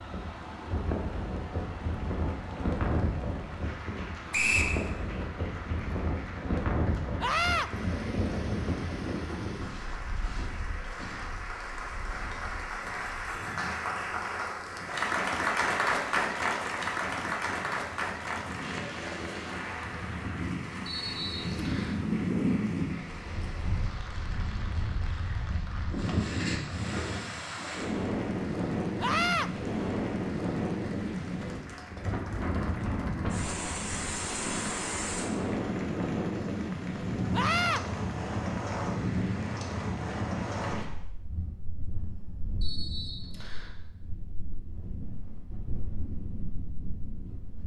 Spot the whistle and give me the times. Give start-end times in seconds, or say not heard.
4.3-4.8, 20.9-21.9, 42.6-43.7.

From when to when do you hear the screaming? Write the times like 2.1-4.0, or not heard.
7.2-7.7, 29.0-29.5, 37.3-37.8.